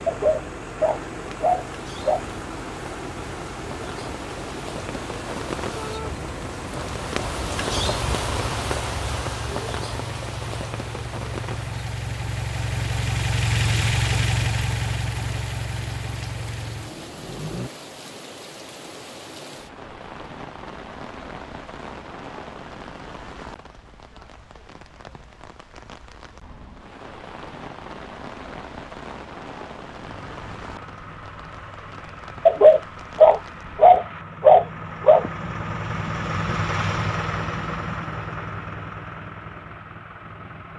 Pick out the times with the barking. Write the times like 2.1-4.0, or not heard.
0.1-2.2, 32.5-35.3.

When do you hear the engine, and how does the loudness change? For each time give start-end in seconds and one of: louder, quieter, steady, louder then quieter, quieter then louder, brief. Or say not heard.
0.0-17.7 louder
30.0-40.7 louder then quieter.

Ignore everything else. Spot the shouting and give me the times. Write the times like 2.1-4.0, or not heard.
5.8-6.2.